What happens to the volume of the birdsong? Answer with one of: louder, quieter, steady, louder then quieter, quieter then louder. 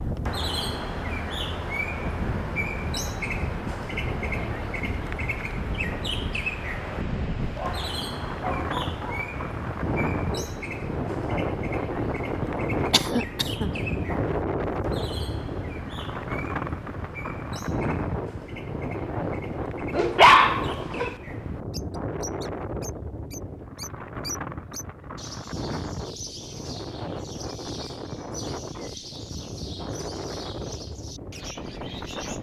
quieter.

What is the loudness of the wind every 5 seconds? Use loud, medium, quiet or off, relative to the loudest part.
medium, medium, loud, loud, medium, medium, medium.